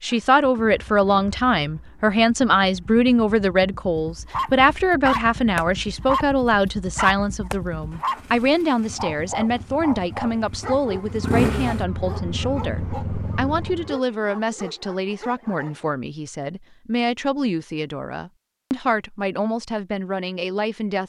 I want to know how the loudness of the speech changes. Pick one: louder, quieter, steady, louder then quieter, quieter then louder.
quieter.